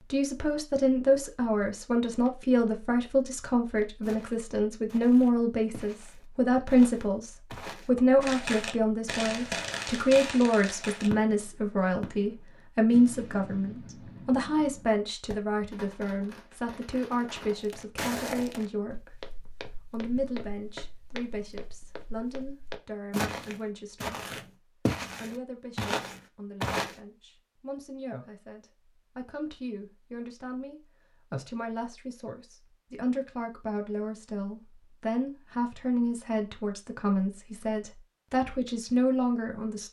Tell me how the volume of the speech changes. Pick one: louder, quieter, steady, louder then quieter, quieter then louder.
quieter then louder.